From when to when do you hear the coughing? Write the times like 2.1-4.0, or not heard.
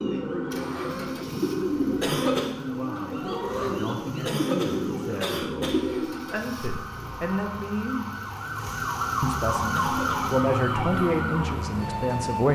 2.0-2.5, 4.2-5.8, 9.7-10.2.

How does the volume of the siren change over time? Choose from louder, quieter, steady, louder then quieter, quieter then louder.
louder.